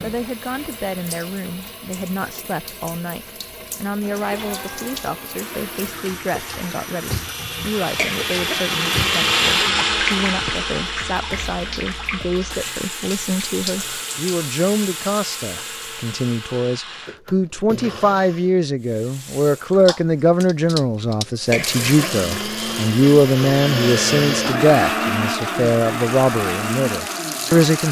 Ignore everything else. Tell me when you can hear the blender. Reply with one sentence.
The blender can be heard from 4.0 to 18.6 s and from 21.5 to 27.8 s.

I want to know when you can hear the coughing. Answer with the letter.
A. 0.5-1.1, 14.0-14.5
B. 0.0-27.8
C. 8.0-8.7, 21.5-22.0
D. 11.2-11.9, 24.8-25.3
C.